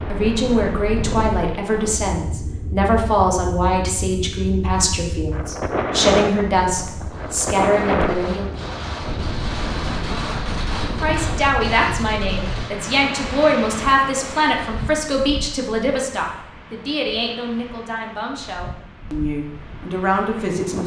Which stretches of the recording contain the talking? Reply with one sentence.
The talking can be heard from 0.1 to 8.5 s and from 10.9 to 20.8 s.